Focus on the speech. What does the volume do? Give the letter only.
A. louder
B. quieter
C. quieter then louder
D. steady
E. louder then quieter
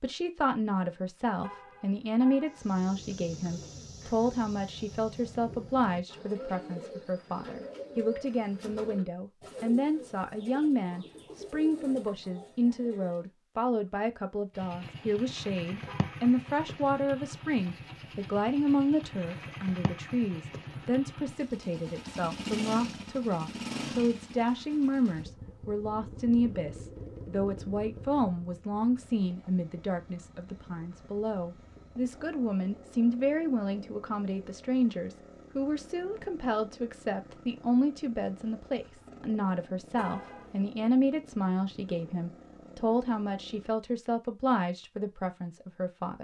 D.